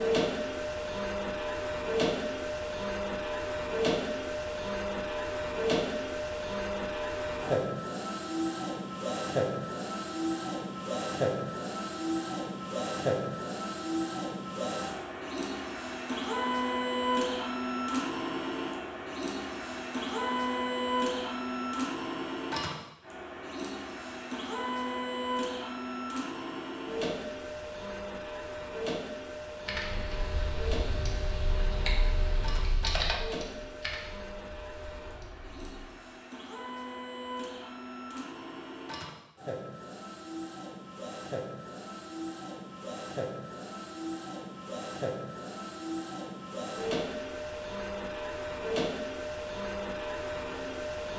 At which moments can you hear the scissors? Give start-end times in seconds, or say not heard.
not heard.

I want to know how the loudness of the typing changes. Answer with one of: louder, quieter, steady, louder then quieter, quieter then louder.
louder then quieter.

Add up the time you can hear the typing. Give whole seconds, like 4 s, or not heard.
6 s.